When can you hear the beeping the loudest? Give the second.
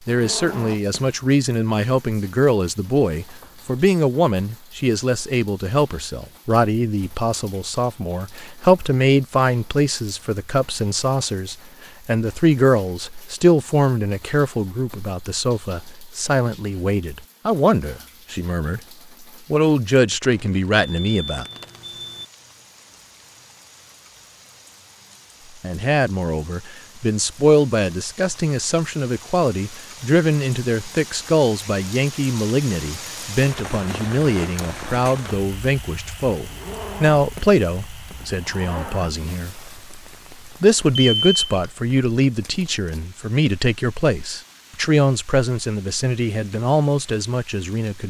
41 s.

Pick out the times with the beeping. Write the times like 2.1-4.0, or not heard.
3.2-3.9, 20.3-22.2, 41.0-41.4.